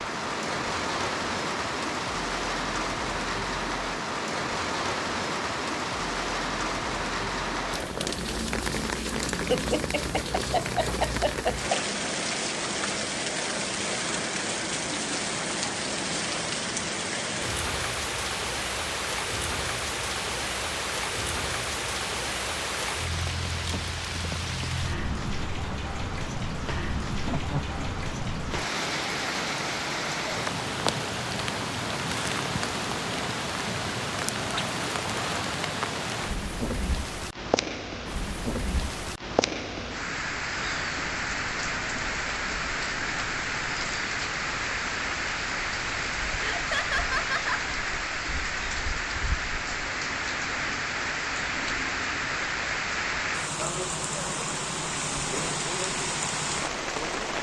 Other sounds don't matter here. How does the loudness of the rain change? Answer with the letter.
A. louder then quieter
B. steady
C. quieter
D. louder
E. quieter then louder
B.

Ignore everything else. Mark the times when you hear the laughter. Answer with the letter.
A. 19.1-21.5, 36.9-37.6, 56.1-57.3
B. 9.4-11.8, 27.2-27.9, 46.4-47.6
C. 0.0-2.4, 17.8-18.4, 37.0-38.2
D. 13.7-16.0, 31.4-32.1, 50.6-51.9
B.